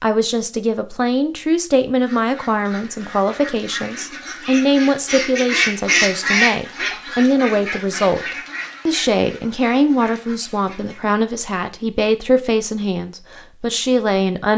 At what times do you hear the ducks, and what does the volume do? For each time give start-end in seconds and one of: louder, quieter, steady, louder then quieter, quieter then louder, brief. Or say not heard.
2.0-11.2 louder then quieter.